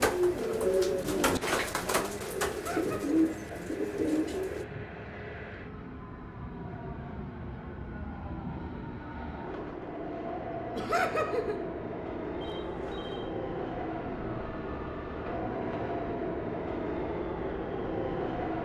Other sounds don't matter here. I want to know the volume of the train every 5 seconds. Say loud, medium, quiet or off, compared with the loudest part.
medium, medium, loud, loud.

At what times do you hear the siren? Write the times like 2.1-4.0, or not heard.
not heard.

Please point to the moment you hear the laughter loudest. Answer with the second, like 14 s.
11 s.